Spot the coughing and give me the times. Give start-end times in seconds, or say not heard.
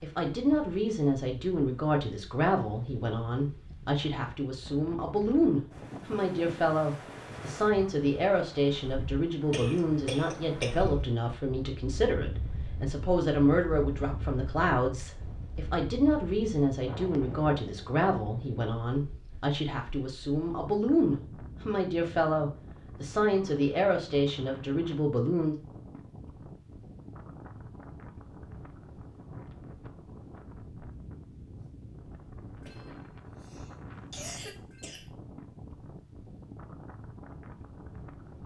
9.5-11.1, 32.6-35.1.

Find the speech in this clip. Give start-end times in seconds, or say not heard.
0.0-25.6.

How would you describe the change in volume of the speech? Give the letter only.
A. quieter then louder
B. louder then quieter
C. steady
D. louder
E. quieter
C.